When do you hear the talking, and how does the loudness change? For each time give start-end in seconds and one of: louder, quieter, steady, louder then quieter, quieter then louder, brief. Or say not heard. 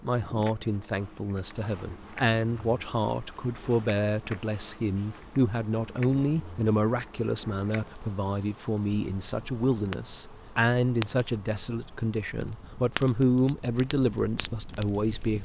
0.0-15.3 steady.